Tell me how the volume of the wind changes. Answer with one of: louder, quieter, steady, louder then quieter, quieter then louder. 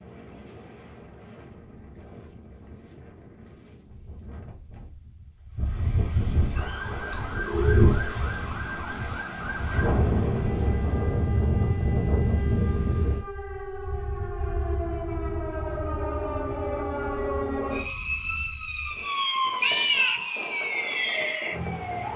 louder then quieter.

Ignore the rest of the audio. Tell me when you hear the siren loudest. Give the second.
20 s.